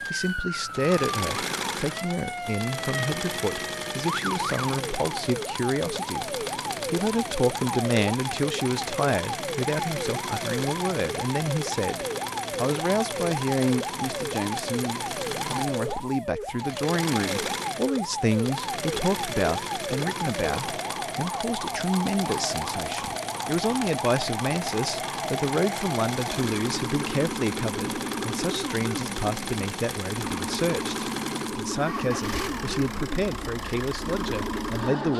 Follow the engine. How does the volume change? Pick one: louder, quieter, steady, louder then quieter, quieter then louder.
steady.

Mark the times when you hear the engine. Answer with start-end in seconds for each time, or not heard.
0.0-35.1.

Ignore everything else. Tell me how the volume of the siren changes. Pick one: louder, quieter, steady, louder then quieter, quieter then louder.
steady.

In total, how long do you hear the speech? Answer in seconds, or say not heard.
35 s.